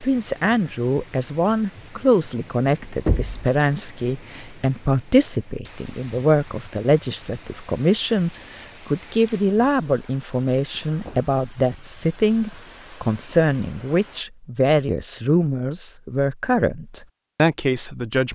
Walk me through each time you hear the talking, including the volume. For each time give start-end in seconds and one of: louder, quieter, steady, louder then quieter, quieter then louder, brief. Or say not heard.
0.0-18.3 steady.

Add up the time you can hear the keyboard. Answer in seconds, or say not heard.
not heard.